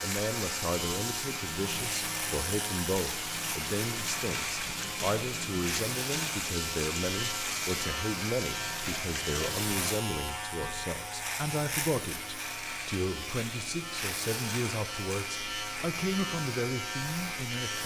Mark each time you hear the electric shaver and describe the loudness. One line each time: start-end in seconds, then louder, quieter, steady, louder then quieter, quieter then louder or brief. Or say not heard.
0.0-17.8 steady.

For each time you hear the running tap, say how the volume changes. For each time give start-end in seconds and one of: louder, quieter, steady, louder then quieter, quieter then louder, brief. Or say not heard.
0.0-10.9 steady.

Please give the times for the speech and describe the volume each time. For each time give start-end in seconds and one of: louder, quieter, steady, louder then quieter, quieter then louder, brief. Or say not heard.
0.0-17.8 steady.